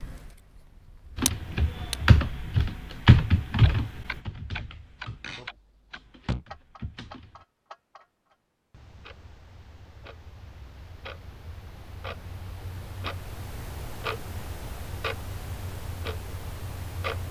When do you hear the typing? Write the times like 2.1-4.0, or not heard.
1.1-7.4.